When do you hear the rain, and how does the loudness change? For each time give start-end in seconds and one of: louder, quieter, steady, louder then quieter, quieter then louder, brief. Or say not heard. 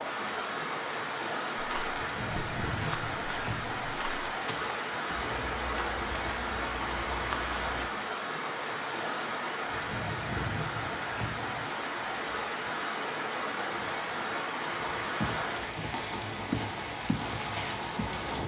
0.0-18.4 steady.